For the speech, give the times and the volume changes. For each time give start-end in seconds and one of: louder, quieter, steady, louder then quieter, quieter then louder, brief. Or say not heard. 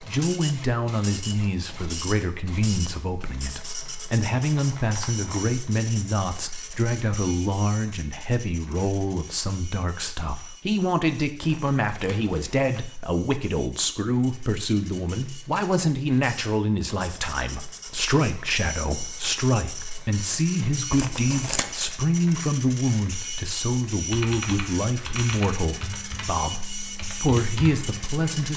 0.0-28.5 steady.